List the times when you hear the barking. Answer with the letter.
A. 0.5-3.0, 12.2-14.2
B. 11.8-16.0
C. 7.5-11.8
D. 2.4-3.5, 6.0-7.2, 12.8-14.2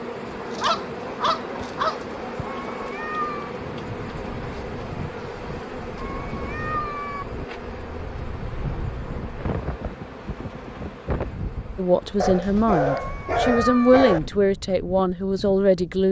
A.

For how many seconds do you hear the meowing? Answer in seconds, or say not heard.
4 s.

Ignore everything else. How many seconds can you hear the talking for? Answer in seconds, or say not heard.
4 s.